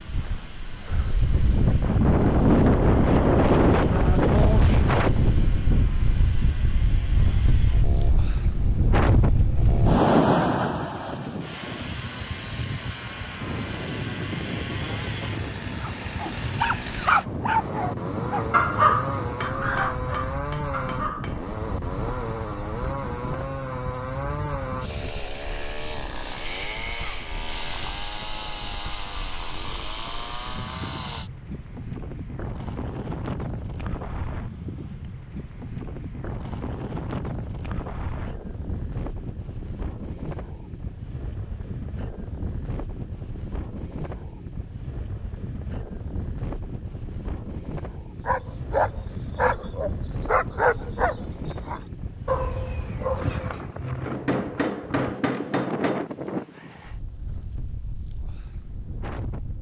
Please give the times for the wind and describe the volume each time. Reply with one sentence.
You can hear the wind from 0.0 to 59.5 s, getting quieter.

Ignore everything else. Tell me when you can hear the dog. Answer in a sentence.
You can hear the dog from 15.8 to 21.4 s and from 48.2 to 53.8 s.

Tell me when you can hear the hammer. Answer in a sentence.
You can hear the hammer from 19.2 to 21.4 s and from 54.0 to 56.0 s.